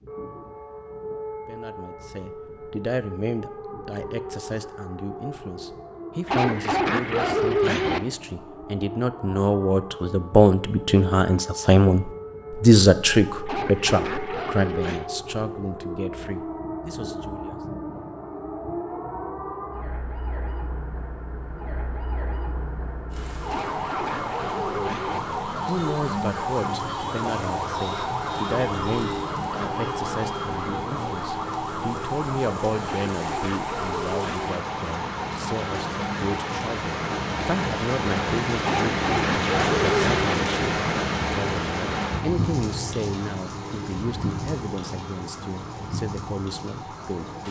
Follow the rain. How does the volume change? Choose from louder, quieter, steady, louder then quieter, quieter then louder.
louder then quieter.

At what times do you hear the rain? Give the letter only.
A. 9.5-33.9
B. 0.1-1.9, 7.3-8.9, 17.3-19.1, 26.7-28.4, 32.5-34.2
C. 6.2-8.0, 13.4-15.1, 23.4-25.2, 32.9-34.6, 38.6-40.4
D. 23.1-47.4
D.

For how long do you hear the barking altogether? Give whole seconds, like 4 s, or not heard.
9 s.